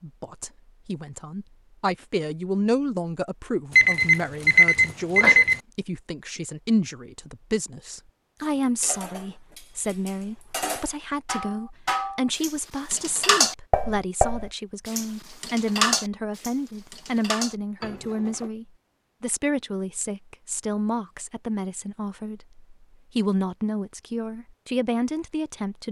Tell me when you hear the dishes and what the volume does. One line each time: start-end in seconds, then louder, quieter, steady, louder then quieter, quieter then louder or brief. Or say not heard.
8.4-18.5 louder then quieter.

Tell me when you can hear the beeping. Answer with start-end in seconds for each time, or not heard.
3.7-5.6.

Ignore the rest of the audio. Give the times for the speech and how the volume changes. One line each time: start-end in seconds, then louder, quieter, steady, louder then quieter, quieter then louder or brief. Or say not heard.
0.0-25.8 steady.